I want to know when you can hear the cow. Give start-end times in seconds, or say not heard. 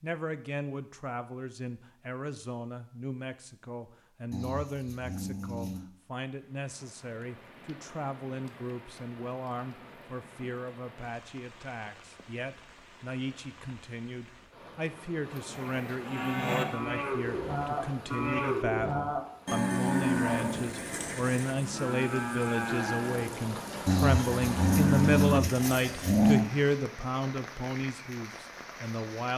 16.0-26.2.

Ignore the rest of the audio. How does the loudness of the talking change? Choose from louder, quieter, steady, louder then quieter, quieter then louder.
louder.